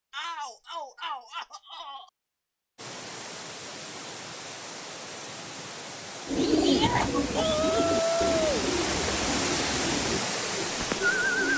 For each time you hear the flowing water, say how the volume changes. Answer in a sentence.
You can hear the flowing water from 2.8 to 11.5 s, getting louder.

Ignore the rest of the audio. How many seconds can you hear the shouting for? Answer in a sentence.
You can hear the shouting for 3 seconds altogether.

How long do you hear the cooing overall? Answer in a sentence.
The cooing can be heard for 5 seconds in total.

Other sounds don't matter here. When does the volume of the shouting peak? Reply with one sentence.
The volume of the shouting peaks at 8 seconds.